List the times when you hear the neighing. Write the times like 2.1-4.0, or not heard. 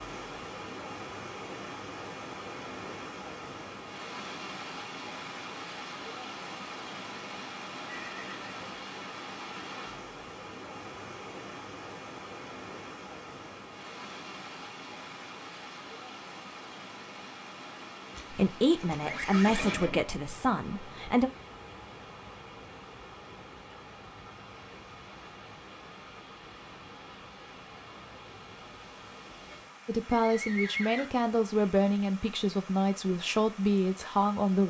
7.8-8.8, 18.1-20.1, 30.1-31.1.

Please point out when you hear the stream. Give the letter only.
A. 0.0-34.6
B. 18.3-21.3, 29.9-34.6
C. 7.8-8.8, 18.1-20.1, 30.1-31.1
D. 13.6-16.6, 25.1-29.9
A.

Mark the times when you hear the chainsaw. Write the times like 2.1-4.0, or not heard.
not heard.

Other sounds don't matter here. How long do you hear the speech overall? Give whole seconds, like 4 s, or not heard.
8 s.